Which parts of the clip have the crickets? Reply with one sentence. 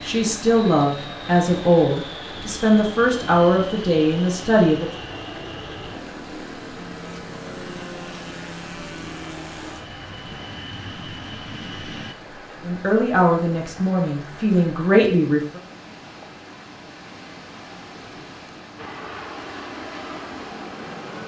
You can't hear the crickets here.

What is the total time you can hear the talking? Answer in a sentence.
You can hear the talking for 8 seconds altogether.